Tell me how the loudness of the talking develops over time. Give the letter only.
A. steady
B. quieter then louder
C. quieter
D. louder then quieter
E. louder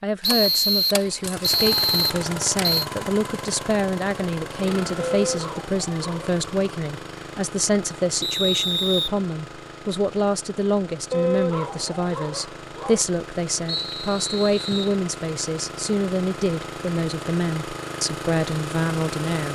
A.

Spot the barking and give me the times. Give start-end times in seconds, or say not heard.
5.0-6.2, 11.1-13.1.